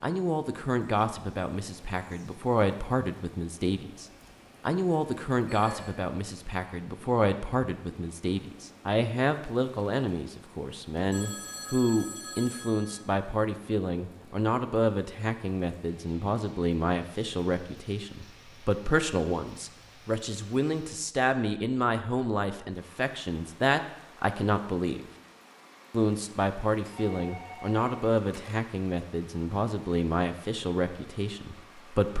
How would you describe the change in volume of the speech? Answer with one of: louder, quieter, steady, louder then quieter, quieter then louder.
steady.